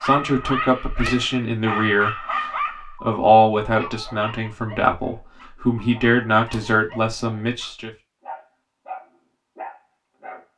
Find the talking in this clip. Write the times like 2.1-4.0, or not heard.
0.0-7.9.